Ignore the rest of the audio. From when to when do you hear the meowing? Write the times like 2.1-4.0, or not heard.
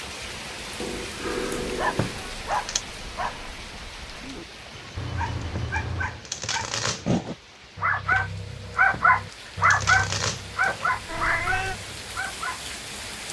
0.8-2.4, 5.0-6.2, 11.1-11.8.